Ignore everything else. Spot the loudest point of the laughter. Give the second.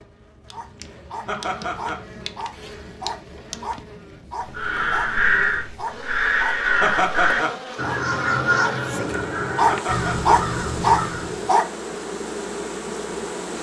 7 s.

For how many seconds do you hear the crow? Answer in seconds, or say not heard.
7 s.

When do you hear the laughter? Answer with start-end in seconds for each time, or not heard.
1.2-2.0, 6.8-7.6, 9.7-10.3.